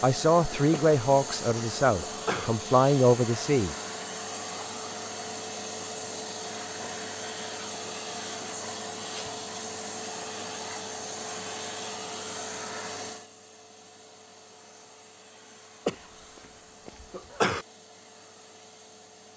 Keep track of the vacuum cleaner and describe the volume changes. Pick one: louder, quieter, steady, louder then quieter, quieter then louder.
quieter.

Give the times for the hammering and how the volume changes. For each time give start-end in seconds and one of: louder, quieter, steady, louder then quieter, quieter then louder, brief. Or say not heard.
not heard.